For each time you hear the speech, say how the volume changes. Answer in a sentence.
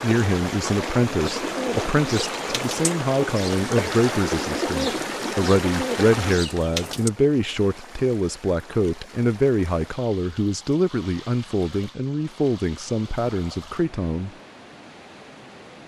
You can hear the speech from 0.0 to 14.3 s, at a steady volume.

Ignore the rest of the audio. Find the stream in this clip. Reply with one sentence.
You can hear the stream from 0.0 to 15.8 s.